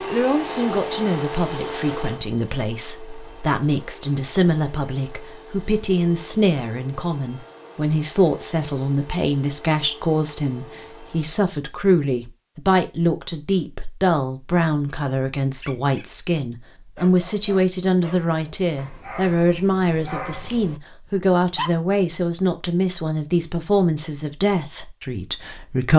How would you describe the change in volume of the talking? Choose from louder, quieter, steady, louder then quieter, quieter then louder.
steady.